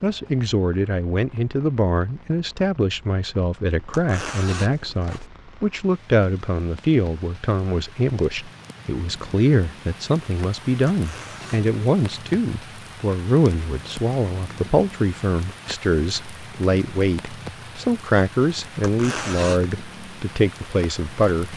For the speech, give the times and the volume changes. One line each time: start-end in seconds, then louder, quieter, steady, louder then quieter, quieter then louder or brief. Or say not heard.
0.0-21.5 steady.